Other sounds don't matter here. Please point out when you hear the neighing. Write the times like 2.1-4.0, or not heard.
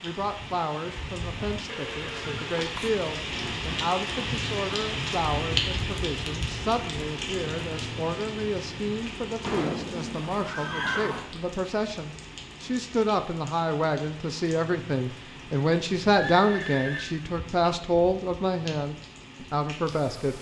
1.6-2.9, 9.4-11.3, 16.4-17.1.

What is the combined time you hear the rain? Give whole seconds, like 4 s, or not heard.
20 s.